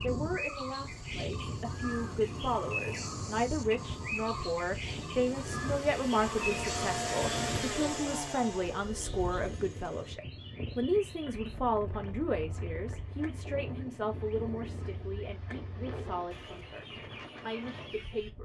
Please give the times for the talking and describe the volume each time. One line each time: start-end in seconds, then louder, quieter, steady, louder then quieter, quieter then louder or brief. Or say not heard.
0.0-18.4 quieter.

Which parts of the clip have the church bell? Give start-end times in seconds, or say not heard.
not heard.